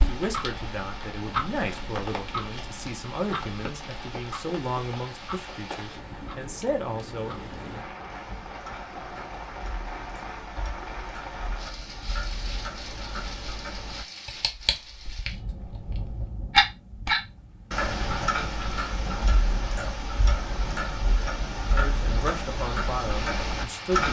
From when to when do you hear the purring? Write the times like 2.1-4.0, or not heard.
not heard.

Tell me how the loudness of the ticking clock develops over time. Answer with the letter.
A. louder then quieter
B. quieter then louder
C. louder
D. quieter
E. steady
B.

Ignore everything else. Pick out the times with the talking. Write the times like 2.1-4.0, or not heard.
0.0-7.3, 21.8-24.0.